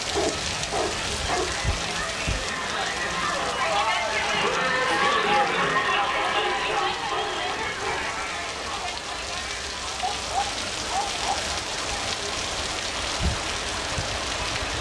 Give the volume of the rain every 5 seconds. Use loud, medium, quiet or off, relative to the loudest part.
loud, medium, loud.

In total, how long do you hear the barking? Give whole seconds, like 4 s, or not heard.
5 s.